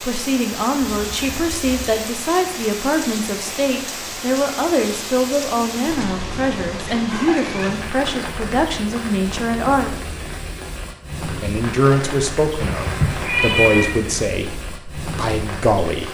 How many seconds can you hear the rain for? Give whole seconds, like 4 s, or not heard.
16 s.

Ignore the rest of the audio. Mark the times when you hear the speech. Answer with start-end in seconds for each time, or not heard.
0.0-9.9, 11.2-16.0.